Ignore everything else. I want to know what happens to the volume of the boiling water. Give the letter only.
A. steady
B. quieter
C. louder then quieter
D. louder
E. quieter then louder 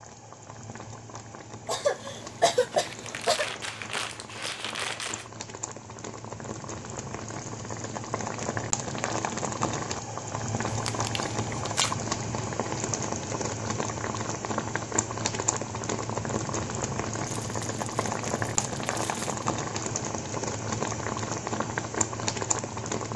D.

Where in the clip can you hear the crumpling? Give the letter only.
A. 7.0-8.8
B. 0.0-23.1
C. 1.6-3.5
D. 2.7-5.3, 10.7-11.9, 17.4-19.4
D.